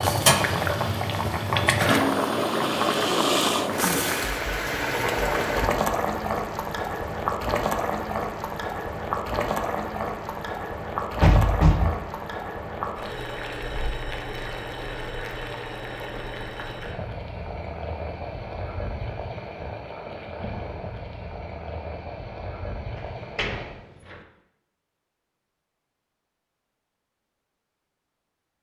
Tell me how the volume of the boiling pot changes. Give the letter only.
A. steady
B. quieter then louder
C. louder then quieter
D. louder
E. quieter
E.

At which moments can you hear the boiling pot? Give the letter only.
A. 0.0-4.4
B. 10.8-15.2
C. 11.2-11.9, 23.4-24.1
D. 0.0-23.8
D.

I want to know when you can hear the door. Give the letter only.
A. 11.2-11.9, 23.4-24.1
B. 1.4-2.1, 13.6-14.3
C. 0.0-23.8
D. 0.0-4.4
A.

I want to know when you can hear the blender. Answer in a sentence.
The blender can be heard from 0.0 to 4.4 s.